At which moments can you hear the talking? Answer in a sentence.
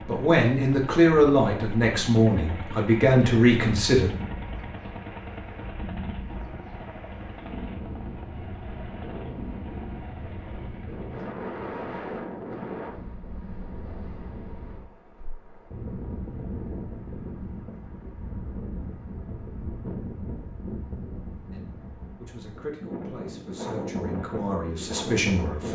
You can hear the talking from 0.1 to 4.1 s and from 21.5 to 25.7 s.